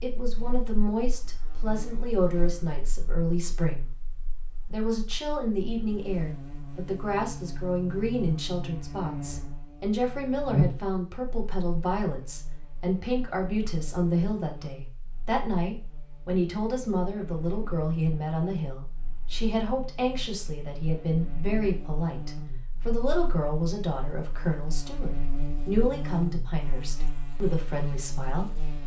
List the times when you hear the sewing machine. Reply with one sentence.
The sewing machine can't be heard in this clip.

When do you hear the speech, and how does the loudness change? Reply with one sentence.
The speech can be heard from 0.0 to 28.8 s, at a steady volume.